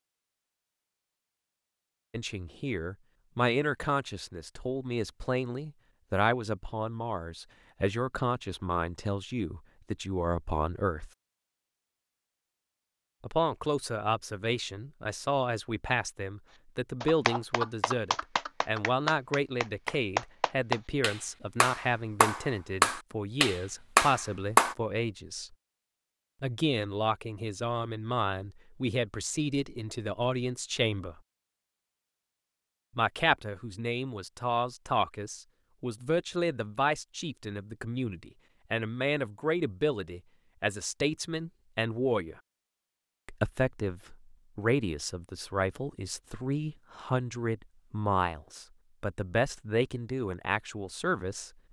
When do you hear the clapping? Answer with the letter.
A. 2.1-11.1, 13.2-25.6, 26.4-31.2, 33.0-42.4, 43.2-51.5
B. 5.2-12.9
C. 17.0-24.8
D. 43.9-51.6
C.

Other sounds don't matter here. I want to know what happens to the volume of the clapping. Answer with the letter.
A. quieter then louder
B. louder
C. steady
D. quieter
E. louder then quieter
B.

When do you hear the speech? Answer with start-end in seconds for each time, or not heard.
2.1-11.1, 13.2-25.6, 26.4-31.2, 33.0-42.4, 43.2-51.5.